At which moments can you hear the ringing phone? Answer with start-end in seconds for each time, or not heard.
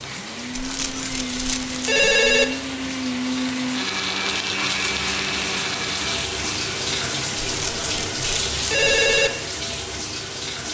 0.5-2.5, 7.4-9.3.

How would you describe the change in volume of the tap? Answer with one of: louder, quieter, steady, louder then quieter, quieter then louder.
louder.